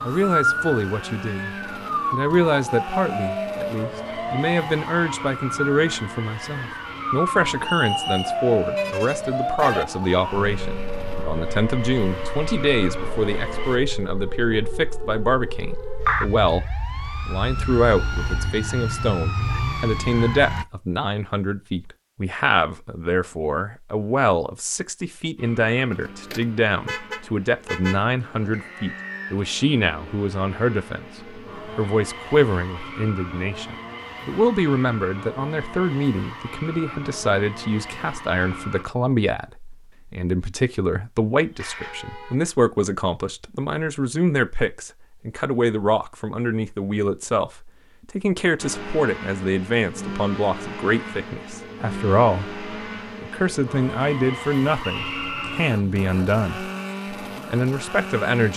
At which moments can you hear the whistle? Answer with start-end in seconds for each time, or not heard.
7.6-8.3, 28.5-29.4, 54.8-55.6.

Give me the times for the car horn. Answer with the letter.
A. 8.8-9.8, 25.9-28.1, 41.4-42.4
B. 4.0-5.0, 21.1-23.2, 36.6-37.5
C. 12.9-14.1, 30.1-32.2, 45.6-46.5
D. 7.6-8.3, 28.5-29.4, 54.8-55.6
A.